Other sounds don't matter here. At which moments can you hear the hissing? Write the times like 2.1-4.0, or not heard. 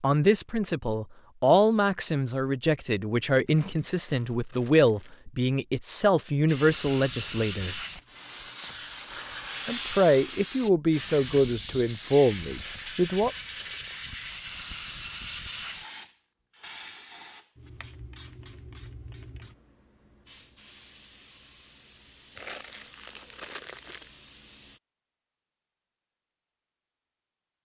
6.5-24.8.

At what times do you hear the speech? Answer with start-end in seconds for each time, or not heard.
0.0-7.8, 9.7-13.3.